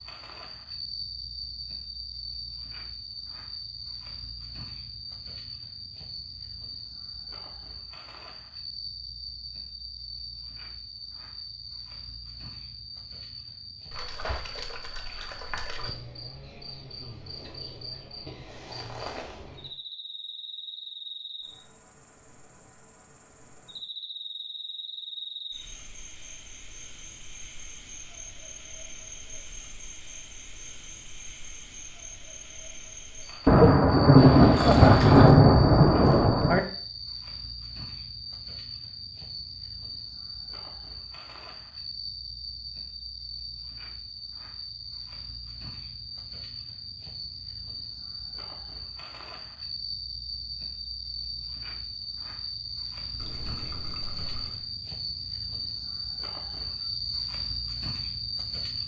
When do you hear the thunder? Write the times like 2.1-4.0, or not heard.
33.5-36.6.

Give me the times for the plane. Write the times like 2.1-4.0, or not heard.
not heard.